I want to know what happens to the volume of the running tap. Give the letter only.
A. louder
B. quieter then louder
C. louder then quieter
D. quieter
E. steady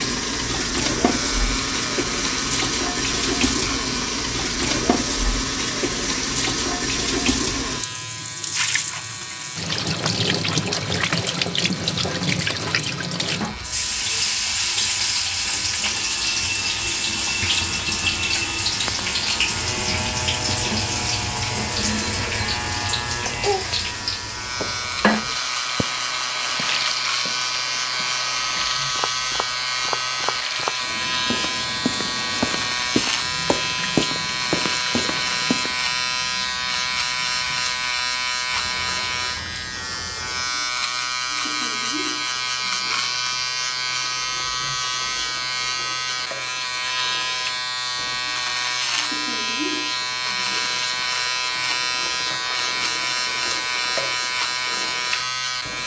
D.